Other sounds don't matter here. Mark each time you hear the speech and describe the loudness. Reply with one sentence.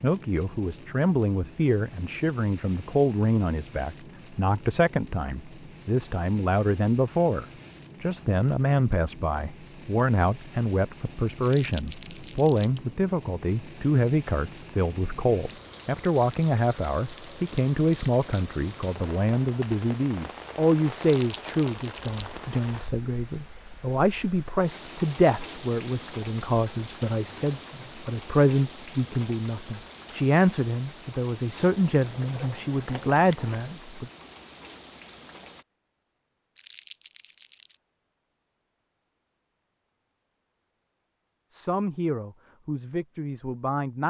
You can hear the speech from 0.0 to 34.1 s, at a steady volume; and briefly from 41.5 to 44.0 s.